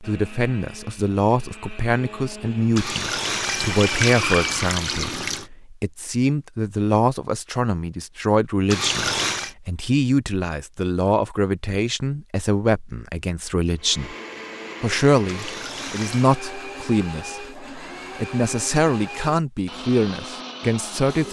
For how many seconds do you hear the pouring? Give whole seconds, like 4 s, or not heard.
5 s.